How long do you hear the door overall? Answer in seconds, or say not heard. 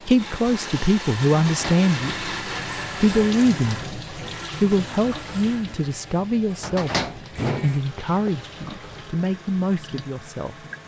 2 s.